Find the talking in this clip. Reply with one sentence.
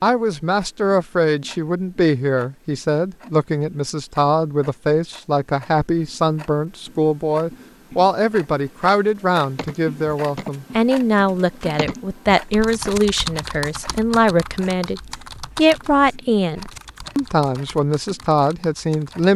You can hear the talking from 0.0 to 19.3 s.